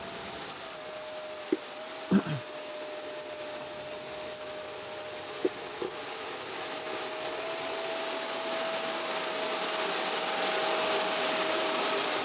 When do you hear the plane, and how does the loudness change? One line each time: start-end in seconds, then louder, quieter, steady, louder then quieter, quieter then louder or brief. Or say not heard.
0.0-12.2 louder.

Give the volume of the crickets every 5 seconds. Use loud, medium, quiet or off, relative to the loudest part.
loud, medium, off.